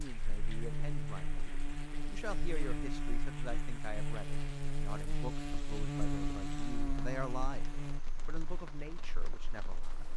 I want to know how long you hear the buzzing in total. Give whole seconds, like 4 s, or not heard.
10 s.